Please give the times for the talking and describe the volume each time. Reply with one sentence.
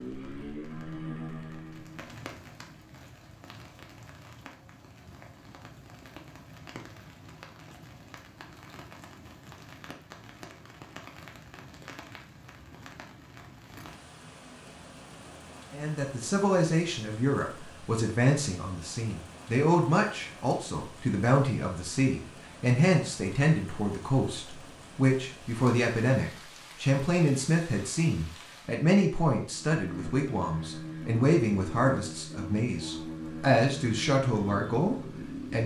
The talking can be heard from 15.7 to 35.6 s, at a steady volume.